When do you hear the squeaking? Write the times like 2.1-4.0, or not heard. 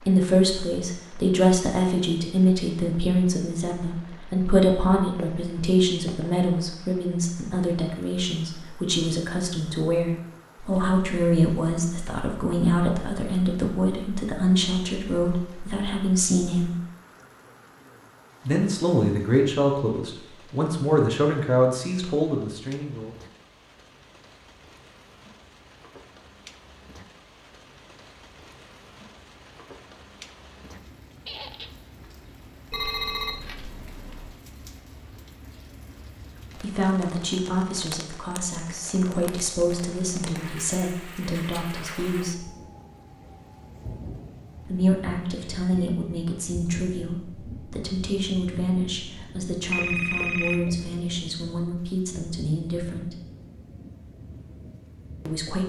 31.2-31.8.